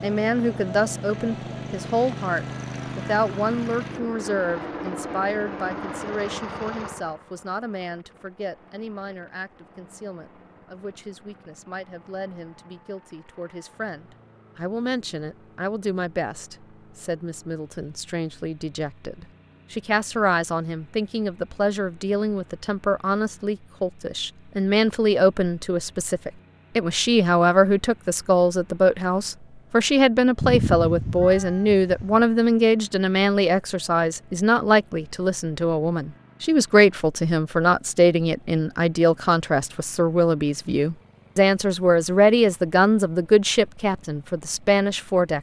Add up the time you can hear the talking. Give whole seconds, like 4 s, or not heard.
45 s.